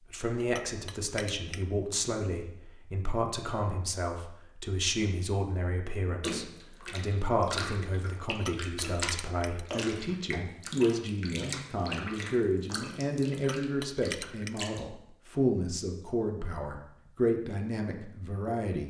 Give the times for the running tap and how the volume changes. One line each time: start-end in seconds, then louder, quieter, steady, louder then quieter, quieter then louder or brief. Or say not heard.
6.2-14.9 quieter.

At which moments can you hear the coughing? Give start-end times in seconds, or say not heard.
not heard.